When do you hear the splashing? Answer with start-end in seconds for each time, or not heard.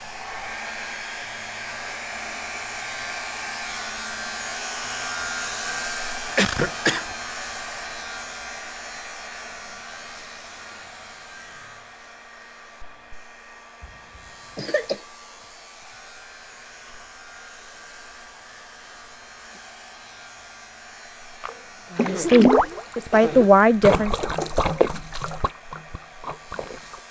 21.4-27.0.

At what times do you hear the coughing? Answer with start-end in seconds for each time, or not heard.
6.3-7.1, 14.6-15.0, 21.4-23.5.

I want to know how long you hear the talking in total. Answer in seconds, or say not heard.
2 s.